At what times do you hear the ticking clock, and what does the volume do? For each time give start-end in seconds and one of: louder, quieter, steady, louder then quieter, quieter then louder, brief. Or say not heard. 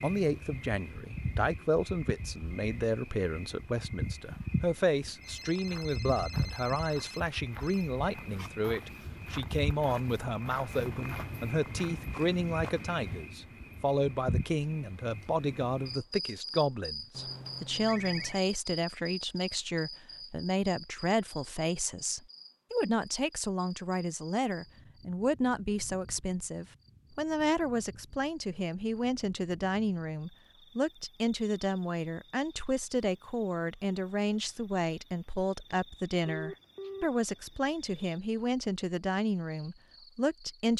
not heard.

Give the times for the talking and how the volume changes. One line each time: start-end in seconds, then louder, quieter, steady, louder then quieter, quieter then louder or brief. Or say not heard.
0.0-40.7 steady.